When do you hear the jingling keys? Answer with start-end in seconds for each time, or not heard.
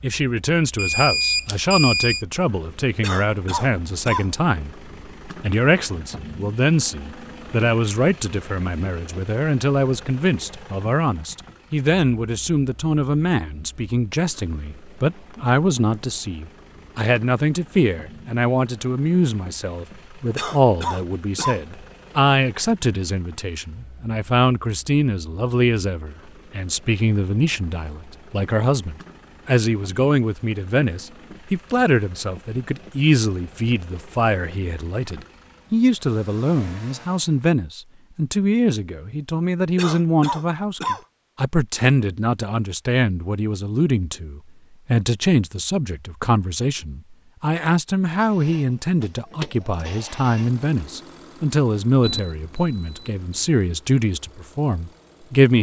not heard.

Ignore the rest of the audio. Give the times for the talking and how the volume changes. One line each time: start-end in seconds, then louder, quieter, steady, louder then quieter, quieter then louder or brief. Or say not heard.
0.0-55.5 steady.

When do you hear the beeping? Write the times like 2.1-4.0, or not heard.
0.8-2.2, 52.0-53.5.